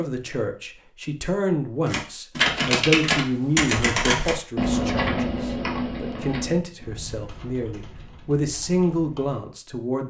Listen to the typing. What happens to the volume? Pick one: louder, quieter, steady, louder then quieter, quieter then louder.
quieter.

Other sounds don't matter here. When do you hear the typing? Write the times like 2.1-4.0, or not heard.
1.9-9.4.